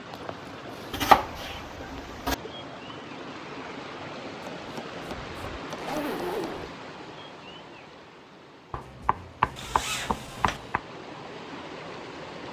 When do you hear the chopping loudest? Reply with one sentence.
The loudest moment of the chopping is at 1 second.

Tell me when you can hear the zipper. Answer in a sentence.
You can hear the zipper from 0.1 to 1.0 s, from 5.8 to 6.7 s and from 9.6 to 10.6 s.